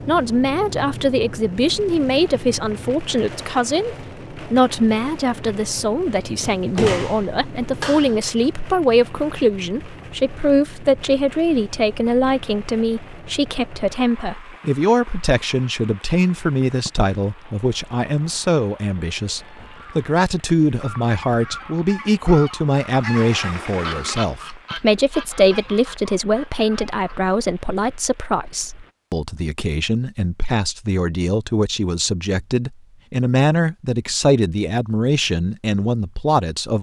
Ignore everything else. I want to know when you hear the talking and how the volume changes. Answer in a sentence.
You can hear the talking from 0.1 to 36.7 s, at a steady volume.